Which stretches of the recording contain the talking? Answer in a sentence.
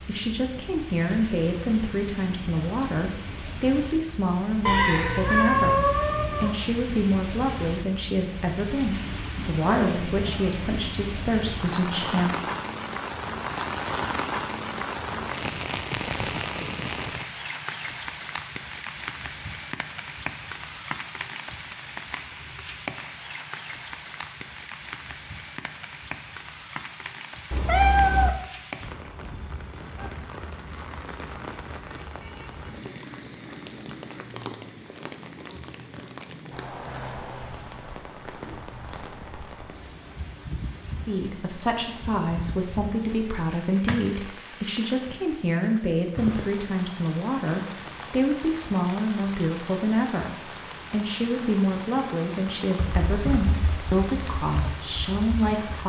The talking can be heard from 0.1 to 12.4 s and from 41.0 to 55.8 s.